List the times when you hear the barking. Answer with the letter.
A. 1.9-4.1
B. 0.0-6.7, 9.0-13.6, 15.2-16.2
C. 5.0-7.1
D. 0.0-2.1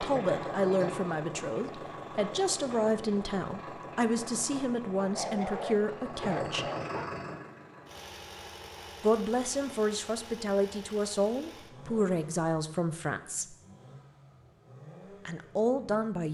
C.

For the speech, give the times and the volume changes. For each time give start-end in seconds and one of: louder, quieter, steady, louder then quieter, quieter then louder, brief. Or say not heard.
0.0-6.7 steady
9.0-13.6 steady
15.2-16.2 brief.